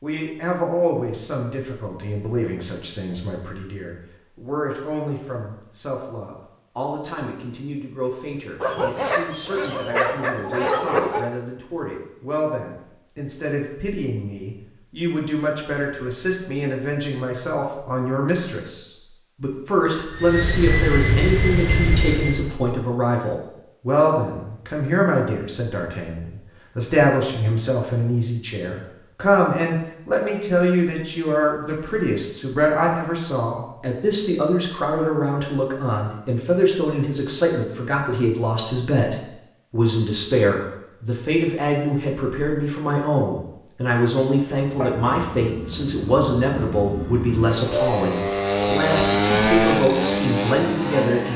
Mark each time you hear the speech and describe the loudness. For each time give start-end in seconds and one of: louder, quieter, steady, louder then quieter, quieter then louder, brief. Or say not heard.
0.0-51.3 louder.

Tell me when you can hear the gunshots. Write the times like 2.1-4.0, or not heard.
not heard.